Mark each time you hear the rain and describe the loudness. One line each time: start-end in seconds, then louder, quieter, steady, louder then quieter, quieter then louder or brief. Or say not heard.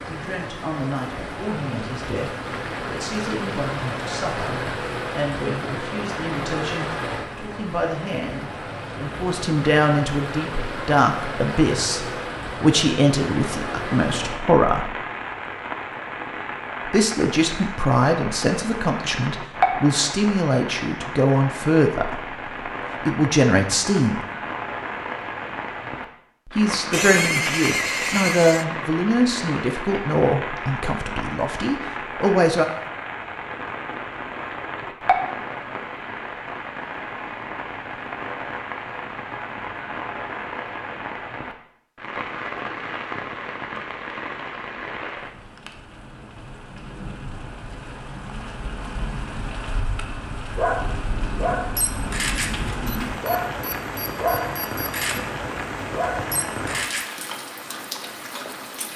0.0-58.9 steady.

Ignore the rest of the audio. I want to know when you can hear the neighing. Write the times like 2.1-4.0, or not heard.
26.9-28.6.